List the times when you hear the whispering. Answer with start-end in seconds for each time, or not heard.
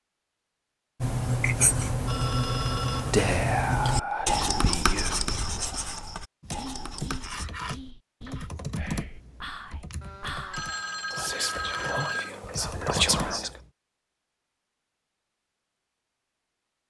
3.0-13.5.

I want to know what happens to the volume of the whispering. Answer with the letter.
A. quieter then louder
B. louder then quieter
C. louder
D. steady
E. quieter
A.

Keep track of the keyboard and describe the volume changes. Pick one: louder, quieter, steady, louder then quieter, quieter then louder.
quieter then louder.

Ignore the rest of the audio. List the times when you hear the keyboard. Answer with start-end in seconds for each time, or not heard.
6.4-13.7.